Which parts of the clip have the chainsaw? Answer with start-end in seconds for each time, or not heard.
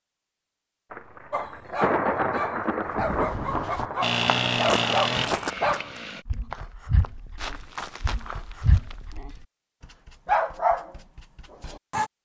4.0-6.2.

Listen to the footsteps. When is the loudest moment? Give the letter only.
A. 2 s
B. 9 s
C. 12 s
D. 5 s
D.